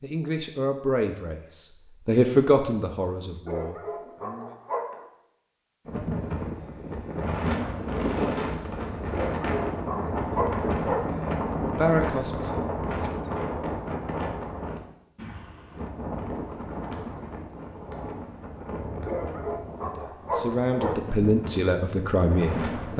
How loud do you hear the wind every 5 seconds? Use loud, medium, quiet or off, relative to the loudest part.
off, loud, loud, medium, medium.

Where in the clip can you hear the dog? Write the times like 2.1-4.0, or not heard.
3.5-5.0, 9.1-11.1, 19.1-21.0.